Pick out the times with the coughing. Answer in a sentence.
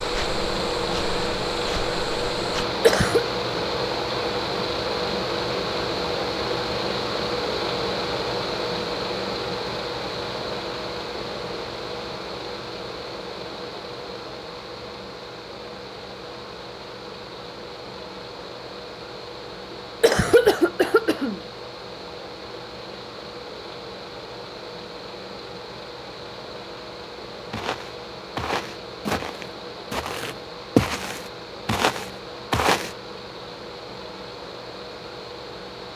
The coughing can be heard from 2.8 to 3.2 s and from 19.7 to 21.4 s.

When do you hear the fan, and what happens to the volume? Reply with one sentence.
The fan can be heard from 0.0 to 35.9 s, getting quieter.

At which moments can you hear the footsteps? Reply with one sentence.
The footsteps can be heard from 0.0 to 2.6 s and from 27.5 to 33.0 s.